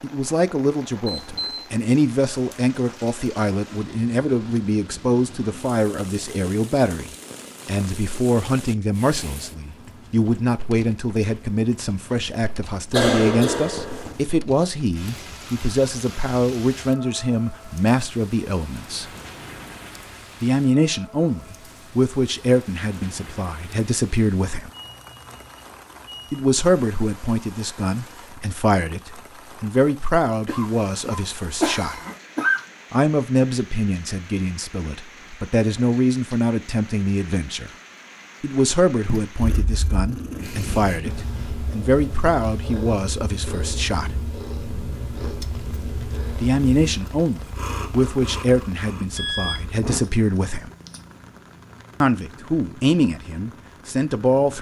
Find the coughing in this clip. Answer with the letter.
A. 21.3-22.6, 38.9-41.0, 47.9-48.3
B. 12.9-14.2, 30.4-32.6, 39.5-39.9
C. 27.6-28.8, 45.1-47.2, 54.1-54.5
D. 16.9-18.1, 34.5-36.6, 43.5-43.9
B.